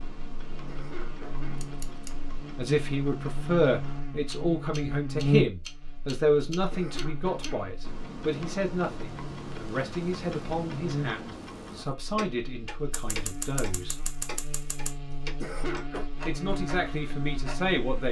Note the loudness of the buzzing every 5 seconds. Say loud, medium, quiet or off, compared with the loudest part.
medium, loud, medium, medium.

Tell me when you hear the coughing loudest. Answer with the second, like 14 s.
16 s.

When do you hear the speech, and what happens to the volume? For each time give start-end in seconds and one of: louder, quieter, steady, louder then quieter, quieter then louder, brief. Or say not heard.
2.5-13.9 quieter
16.2-18.0 brief.